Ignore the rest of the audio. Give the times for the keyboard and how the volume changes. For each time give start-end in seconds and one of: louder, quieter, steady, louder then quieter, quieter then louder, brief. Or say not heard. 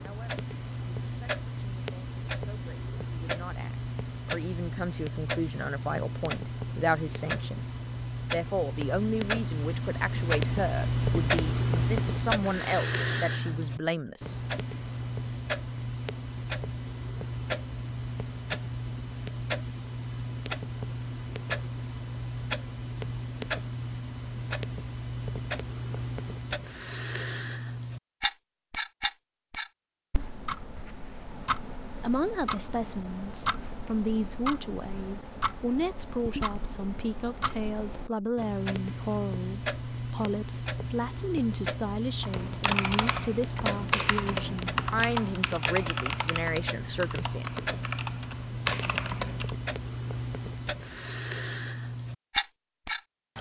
42.2-49.5 quieter then louder.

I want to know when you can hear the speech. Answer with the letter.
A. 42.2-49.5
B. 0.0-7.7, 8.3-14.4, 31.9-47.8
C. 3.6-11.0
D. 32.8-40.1
B.